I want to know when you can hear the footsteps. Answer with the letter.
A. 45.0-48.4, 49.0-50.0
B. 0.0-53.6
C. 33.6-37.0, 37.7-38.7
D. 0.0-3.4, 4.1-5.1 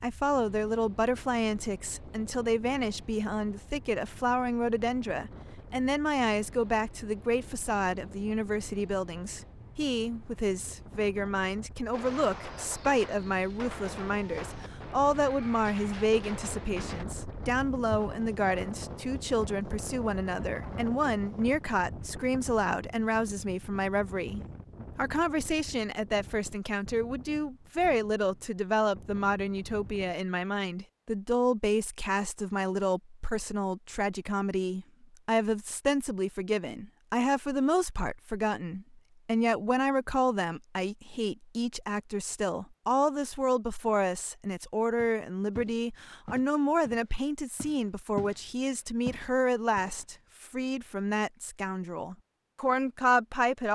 A.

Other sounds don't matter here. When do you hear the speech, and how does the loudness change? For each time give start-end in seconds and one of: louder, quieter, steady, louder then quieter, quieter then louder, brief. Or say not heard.
0.0-53.6 steady.